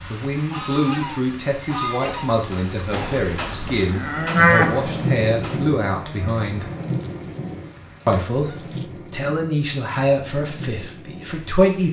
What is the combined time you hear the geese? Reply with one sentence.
The geese can be heard for 4 seconds in total.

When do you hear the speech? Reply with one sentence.
The speech can be heard from 0.1 to 6.7 s and from 8.1 to 11.8 s.